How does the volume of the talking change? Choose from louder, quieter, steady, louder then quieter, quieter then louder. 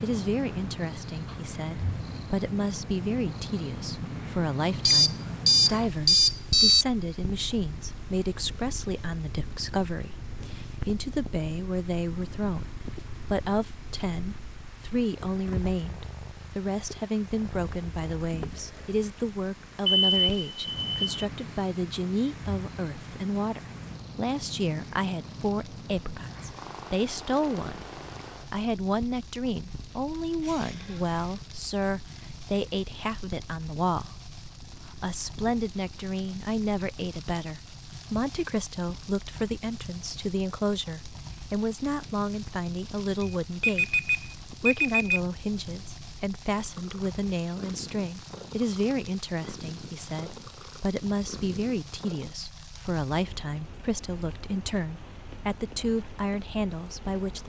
steady.